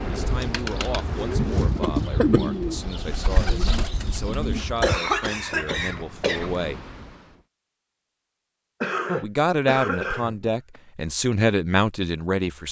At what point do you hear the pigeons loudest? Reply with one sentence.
The volume of the pigeons peaks at 2 seconds.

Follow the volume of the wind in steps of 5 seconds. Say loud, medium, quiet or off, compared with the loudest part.
loud, medium, off.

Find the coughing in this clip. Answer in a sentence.
You can hear the coughing from 1.8 to 2.4 s, from 4.6 to 6.5 s and from 8.8 to 10.8 s.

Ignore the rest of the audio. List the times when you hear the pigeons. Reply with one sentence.
The pigeons can be heard from 0.1 to 4.6 s.